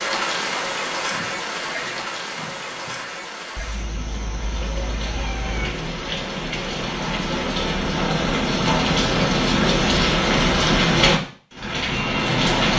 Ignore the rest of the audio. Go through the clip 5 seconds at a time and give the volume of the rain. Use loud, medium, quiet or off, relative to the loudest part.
medium, loud, loud.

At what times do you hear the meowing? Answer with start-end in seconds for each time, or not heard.
3.5-5.7.